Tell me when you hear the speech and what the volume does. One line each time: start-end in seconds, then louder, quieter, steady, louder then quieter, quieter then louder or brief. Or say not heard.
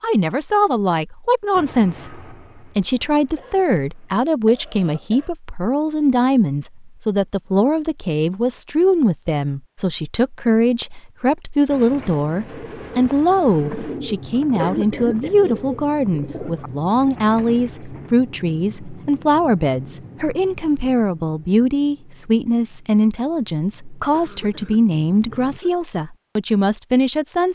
0.0-27.5 steady.